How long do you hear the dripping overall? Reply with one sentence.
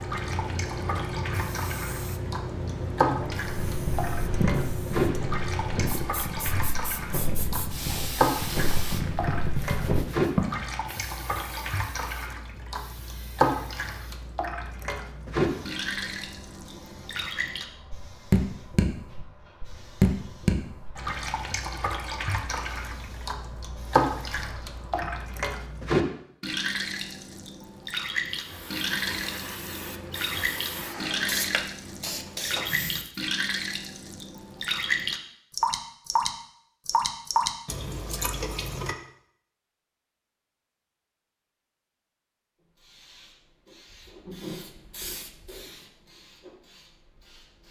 You can hear the dripping for 39 seconds altogether.